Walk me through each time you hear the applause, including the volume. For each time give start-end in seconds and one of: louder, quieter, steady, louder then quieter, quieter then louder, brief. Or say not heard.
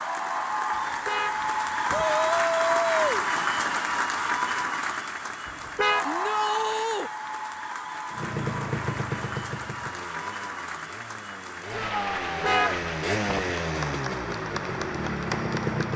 0.0-15.9 quieter.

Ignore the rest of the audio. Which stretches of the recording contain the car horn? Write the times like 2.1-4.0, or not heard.
0.8-2.0, 5.5-6.0, 12.1-13.4.